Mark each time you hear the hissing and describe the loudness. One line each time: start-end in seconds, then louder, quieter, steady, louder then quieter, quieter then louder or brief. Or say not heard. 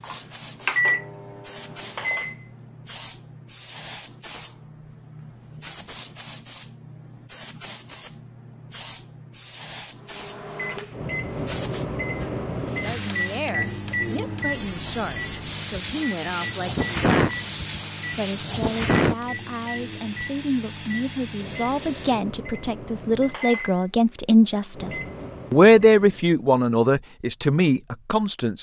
0.0-22.2 louder.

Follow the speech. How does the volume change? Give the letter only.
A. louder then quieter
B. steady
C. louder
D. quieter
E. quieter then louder
C.